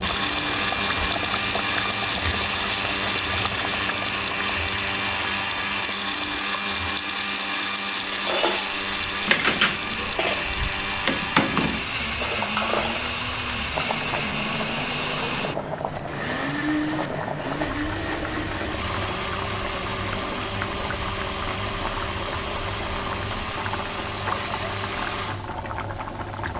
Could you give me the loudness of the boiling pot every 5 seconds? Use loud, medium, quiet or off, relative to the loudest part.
loud, quiet, loud, loud, loud, loud.